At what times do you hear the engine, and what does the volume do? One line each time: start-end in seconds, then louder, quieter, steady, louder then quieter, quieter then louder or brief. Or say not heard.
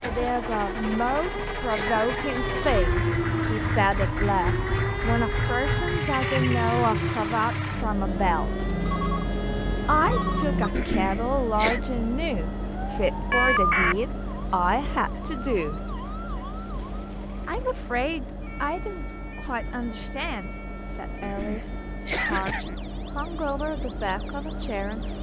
0.0-25.1 quieter.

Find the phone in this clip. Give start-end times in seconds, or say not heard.
8.7-10.7, 13.3-13.9.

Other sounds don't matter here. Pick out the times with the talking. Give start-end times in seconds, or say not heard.
0.0-8.7, 9.8-15.8, 17.4-25.1.